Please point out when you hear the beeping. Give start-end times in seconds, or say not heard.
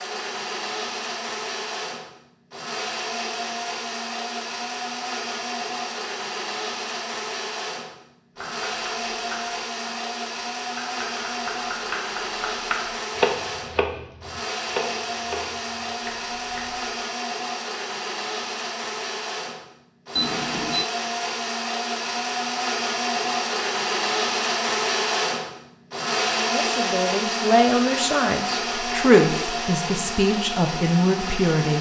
20.1-20.9.